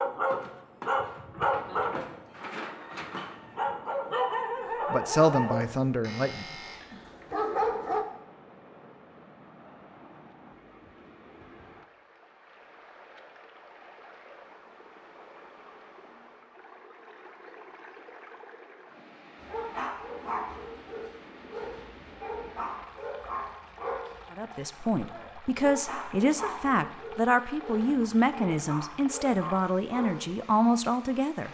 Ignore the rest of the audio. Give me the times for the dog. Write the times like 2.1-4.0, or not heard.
0.0-8.1, 19.4-30.4.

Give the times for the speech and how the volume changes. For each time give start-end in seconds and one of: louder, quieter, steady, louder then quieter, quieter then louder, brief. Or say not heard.
4.9-6.5 brief
24.3-31.5 steady.